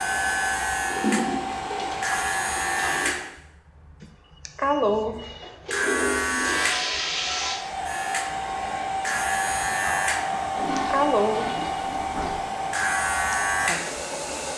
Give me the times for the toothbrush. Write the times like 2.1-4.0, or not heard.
not heard.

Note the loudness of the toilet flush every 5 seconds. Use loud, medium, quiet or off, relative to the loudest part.
loud, loud, medium.